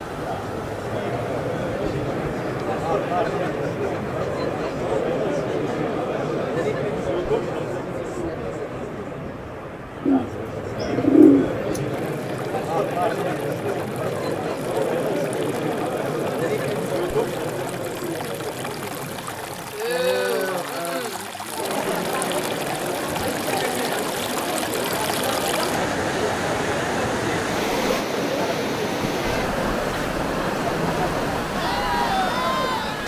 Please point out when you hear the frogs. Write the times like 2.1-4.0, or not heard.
not heard.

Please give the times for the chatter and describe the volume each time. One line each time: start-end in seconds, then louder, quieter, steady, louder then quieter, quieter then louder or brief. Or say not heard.
0.0-33.0 steady.